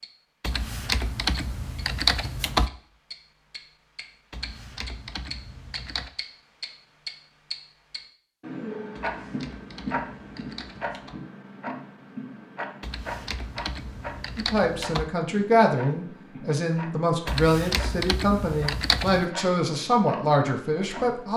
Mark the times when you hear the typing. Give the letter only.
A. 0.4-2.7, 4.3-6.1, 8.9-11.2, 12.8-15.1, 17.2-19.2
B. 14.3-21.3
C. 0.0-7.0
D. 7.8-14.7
A.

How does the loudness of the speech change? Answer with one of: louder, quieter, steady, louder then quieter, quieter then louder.
steady.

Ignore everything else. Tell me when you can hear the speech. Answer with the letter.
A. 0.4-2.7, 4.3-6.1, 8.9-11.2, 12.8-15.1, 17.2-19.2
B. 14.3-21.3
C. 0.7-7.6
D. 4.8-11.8
B.